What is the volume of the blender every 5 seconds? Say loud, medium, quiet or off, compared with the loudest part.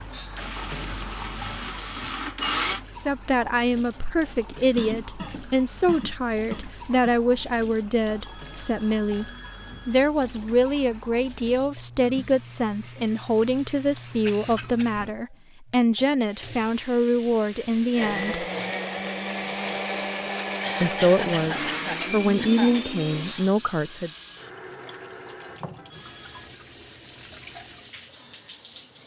loud, off, off, loud, loud, off.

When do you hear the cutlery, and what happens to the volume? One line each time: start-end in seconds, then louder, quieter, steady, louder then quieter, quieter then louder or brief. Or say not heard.
not heard.